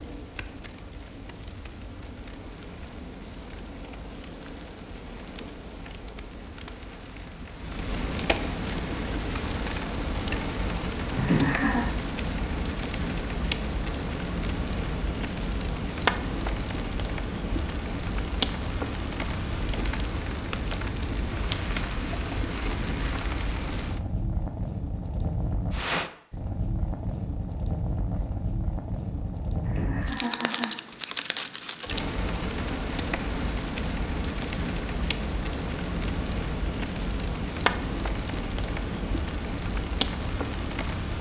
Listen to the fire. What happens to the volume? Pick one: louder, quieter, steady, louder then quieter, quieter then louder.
louder.